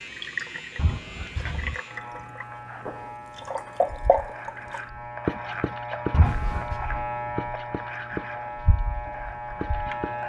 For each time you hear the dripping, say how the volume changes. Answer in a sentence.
The dripping can be heard from 0.0 to 10.2 s, getting louder then quieter.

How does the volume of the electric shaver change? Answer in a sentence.
The volume of the electric shaver goes up.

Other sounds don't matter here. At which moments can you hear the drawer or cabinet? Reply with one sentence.
You can hear the drawer or cabinet from 0.8 to 1.8 s and from 6.1 to 6.8 s.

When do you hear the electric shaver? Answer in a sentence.
The electric shaver can be heard from 0.0 to 10.2 s.